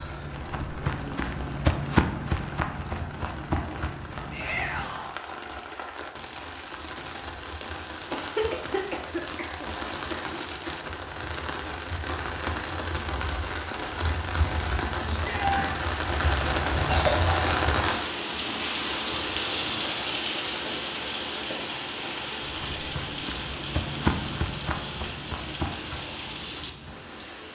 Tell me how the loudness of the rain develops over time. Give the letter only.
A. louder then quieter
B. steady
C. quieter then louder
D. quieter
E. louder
A.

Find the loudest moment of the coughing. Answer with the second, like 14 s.
17 s.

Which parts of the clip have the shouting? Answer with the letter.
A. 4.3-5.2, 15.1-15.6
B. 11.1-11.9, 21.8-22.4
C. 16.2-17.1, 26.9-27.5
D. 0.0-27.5
A.